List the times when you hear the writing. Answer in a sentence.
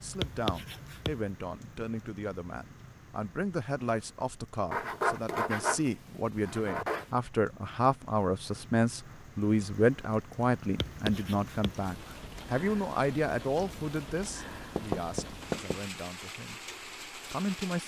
The writing can be heard from 0.1 to 1.2 s, from 4.7 to 7.1 s, from 10.8 to 11.8 s and from 14.8 to 15.8 s.